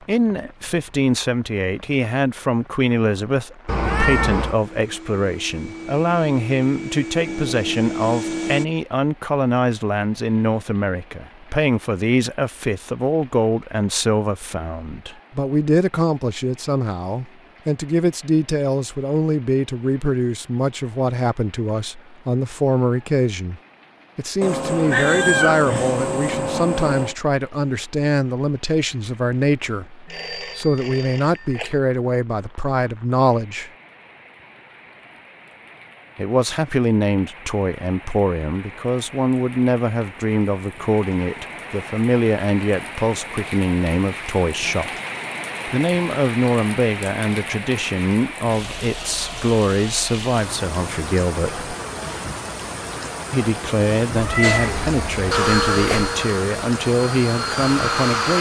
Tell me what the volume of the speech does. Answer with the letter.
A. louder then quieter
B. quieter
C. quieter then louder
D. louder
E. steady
E.